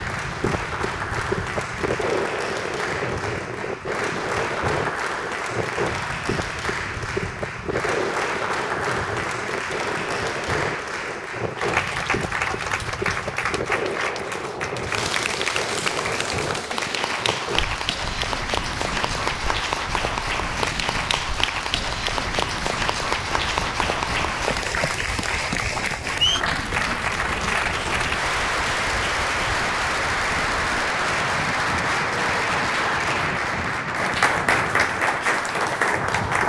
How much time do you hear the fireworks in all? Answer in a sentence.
You can't hear the fireworks here.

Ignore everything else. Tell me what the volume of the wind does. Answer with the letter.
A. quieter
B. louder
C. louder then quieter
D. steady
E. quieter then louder
A.